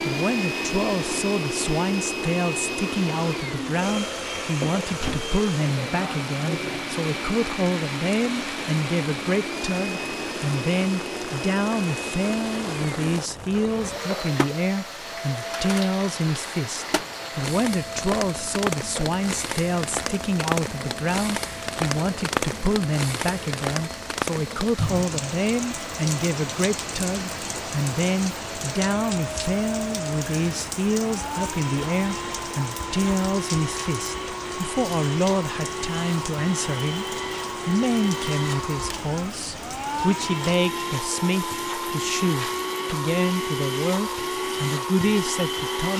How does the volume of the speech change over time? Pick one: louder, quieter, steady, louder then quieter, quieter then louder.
steady.